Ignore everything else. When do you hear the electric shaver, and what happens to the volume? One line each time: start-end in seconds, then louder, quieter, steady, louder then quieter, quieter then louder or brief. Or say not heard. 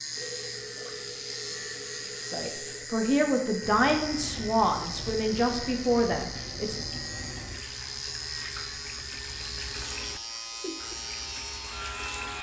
0.0-12.3 steady.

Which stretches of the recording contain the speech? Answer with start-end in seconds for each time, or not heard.
2.2-6.8.